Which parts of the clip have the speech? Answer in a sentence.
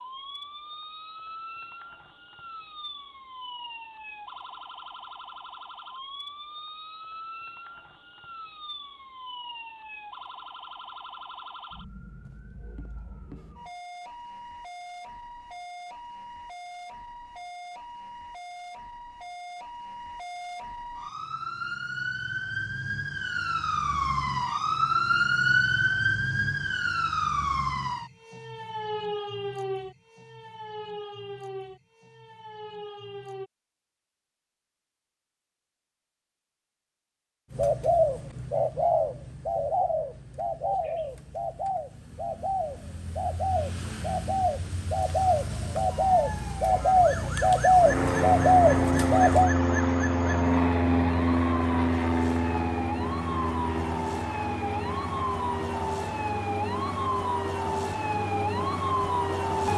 You can't hear the speech here.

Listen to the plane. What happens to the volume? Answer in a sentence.
The volume of the plane goes down.